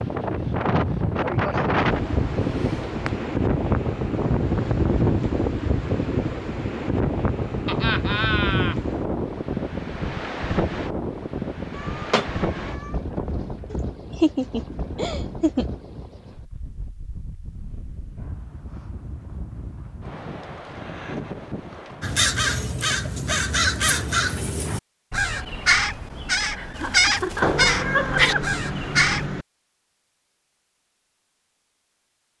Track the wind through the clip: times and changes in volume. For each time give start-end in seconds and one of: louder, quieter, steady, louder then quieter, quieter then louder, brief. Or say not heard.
0.0-22.2 quieter.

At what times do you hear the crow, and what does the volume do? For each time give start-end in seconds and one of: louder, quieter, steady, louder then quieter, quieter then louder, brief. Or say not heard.
22.0-29.2 steady.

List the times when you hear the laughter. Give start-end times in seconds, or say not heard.
7.7-8.8, 13.7-15.7, 26.6-28.4.